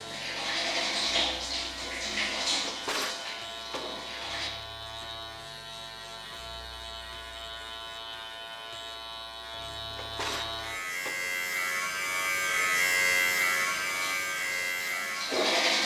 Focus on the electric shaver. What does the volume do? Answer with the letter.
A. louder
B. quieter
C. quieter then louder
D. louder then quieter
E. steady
A.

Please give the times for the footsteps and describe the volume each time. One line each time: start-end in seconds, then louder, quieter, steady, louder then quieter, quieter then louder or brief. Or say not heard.
not heard.